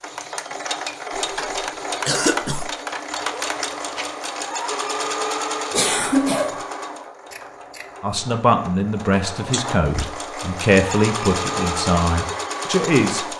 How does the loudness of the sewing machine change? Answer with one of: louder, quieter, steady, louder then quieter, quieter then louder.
quieter then louder.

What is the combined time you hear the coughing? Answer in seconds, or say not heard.
3 s.